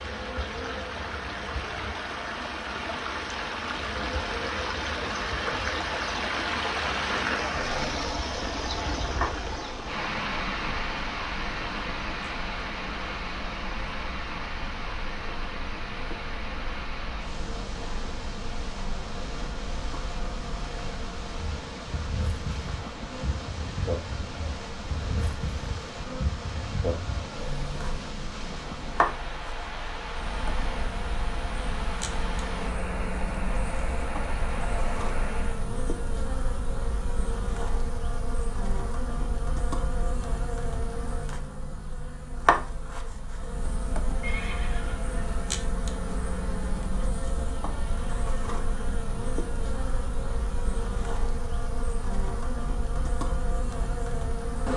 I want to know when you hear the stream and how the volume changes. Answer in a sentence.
The stream can be heard from 0.0 to 35.6 s, getting quieter.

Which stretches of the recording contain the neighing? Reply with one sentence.
You can hear the neighing from 44.2 to 45.5 s.